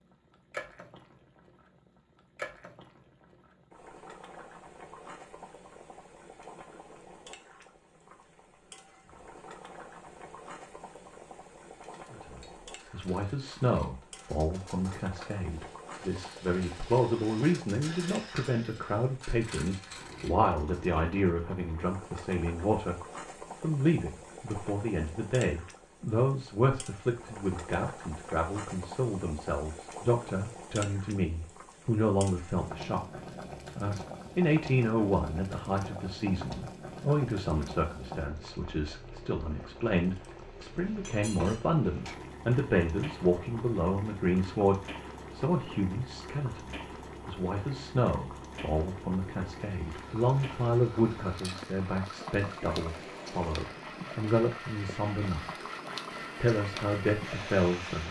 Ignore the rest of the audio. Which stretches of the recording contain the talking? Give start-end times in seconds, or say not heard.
12.1-22.9, 23.6-55.6, 56.4-58.0.